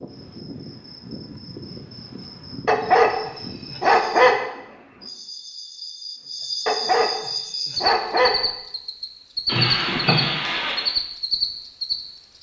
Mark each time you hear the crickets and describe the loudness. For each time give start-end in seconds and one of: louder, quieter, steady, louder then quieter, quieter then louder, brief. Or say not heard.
0.0-12.3 louder.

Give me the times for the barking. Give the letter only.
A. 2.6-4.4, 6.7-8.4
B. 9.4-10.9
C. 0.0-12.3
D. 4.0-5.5
A.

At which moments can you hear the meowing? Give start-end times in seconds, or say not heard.
9.4-10.9.